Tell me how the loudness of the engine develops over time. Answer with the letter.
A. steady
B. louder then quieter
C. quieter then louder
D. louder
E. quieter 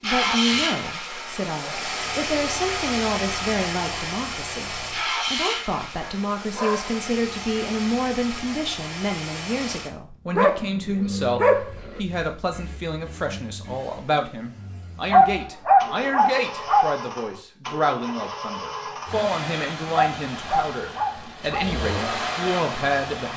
C.